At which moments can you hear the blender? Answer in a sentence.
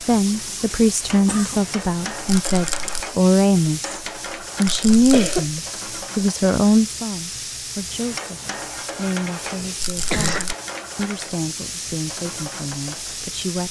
You can't hear the blender here.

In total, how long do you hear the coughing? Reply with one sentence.
The coughing can be heard for 3 seconds in total.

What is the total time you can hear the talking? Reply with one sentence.
You can hear the talking for 13 seconds altogether.